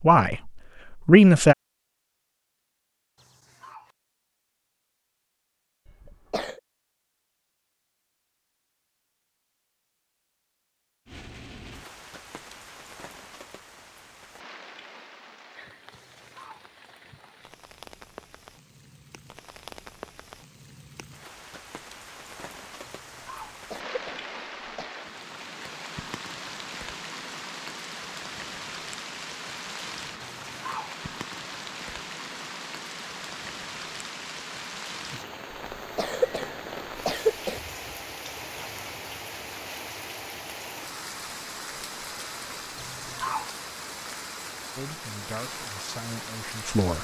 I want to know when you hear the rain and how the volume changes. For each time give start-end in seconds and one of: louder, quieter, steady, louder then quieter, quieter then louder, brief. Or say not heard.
11.1-46.9 louder.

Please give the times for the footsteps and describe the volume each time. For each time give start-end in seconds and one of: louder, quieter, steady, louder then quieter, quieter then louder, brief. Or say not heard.
not heard.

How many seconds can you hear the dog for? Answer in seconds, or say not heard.
4 s.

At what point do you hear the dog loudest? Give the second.
43 s.